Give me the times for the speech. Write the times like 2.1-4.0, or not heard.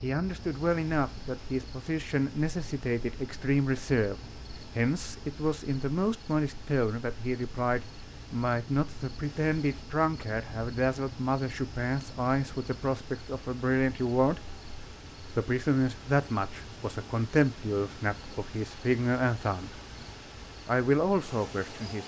0.0-14.4, 15.3-19.7, 20.6-22.0.